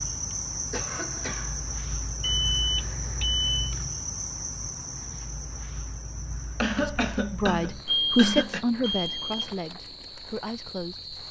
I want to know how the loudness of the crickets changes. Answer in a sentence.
The loudness of the crickets goes down.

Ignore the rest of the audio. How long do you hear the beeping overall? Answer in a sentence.
You can hear the beeping for 3 seconds altogether.